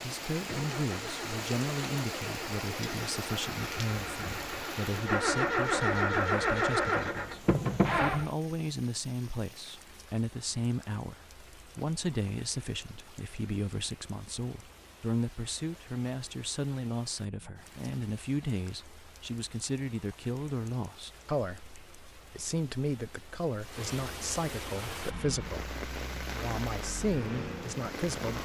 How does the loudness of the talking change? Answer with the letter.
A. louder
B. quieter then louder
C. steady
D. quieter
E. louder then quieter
C.